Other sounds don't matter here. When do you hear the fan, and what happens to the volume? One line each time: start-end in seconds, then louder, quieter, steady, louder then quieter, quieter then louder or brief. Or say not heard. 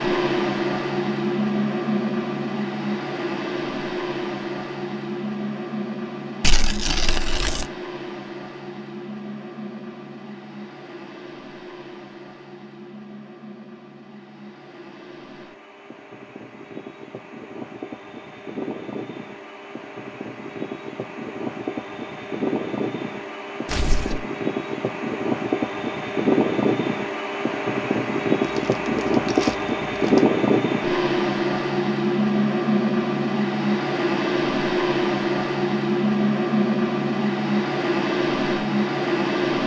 0.0-39.6 quieter then louder.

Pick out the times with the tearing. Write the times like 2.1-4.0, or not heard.
6.4-7.7, 23.6-24.2, 28.4-30.2.